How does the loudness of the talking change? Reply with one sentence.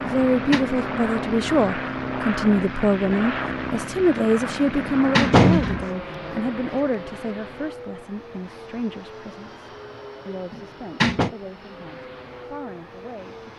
The volume of the talking goes down.